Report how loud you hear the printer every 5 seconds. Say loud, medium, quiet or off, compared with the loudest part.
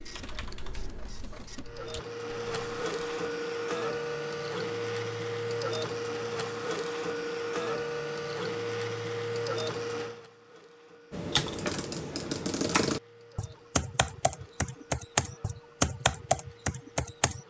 loud, loud, quiet, quiet.